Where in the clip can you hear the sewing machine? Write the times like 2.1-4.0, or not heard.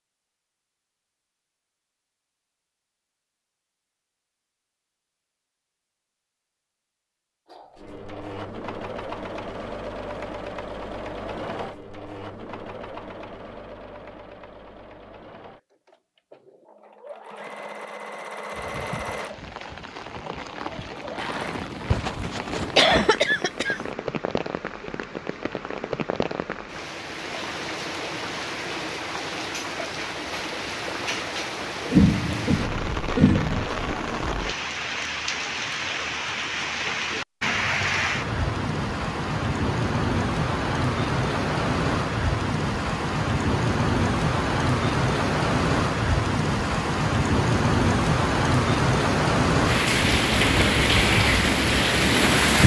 7.5-21.6.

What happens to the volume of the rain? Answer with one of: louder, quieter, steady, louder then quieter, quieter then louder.
louder.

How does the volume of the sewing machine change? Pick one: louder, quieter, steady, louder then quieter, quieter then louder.
quieter then louder.